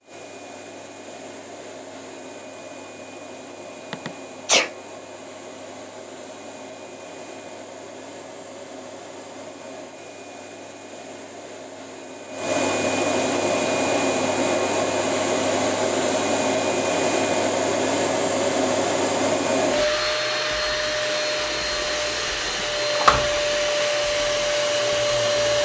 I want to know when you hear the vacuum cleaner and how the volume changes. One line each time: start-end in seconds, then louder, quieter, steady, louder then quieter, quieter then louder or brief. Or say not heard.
0.0-25.6 louder.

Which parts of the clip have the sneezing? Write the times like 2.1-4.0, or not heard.
3.9-4.7.